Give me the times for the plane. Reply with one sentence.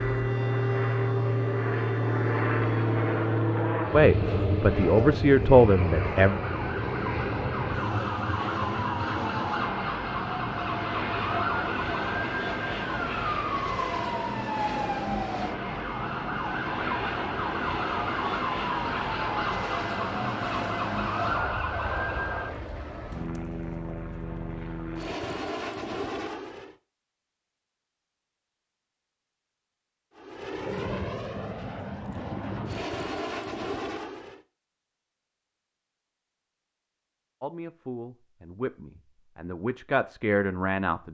You can hear the plane from 0.0 to 26.8 s and from 30.1 to 34.4 s.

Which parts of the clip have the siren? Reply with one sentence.
The siren can be heard from 0.0 to 22.5 s.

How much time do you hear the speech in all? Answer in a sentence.
You can hear the speech for 6 seconds altogether.